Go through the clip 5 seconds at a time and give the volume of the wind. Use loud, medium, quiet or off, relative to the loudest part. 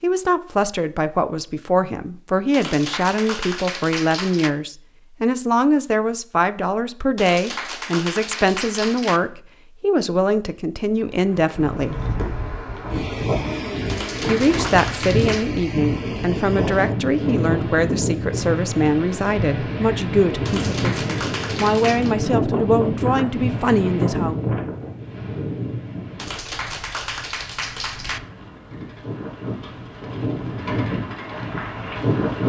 off, off, loud, loud, loud, medium, loud.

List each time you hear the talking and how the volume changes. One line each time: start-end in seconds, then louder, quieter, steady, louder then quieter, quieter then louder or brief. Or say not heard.
0.0-12.0 steady
14.2-24.4 steady.